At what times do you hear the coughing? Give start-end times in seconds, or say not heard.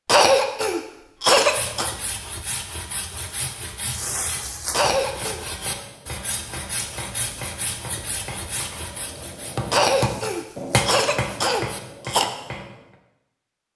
0.1-1.9, 4.7-5.4, 9.7-12.2.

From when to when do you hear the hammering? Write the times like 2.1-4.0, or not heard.
4.7-12.9.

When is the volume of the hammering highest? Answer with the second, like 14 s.
11 s.